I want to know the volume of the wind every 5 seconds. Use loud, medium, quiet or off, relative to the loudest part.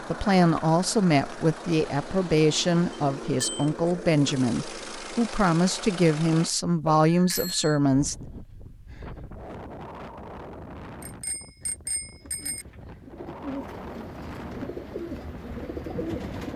off, loud, loud, loud.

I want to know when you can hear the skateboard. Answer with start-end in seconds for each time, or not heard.
not heard.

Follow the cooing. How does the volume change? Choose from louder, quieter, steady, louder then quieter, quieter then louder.
louder.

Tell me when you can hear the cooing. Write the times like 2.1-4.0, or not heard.
12.2-16.5.